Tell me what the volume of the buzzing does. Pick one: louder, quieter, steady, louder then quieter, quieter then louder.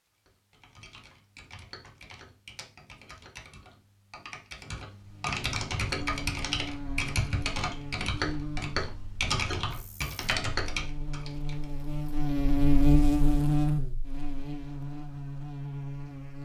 louder then quieter.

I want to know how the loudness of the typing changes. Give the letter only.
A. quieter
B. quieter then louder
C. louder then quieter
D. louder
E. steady
D.